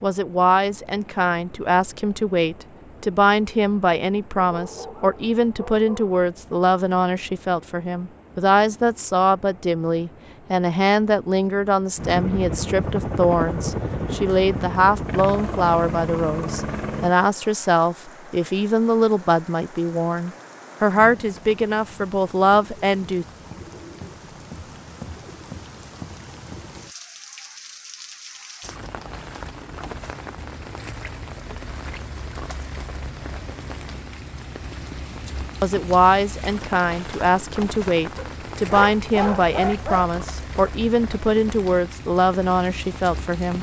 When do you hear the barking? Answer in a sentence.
You can hear the barking from 4.5 to 6.2 s and from 38.1 to 40.1 s.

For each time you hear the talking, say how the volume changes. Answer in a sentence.
The talking can be heard from 0.0 to 23.2 s, at a steady volume; and from 35.6 to 43.5 s, at a steady volume.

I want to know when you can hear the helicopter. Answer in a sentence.
The helicopter can be heard from 11.9 to 17.1 s.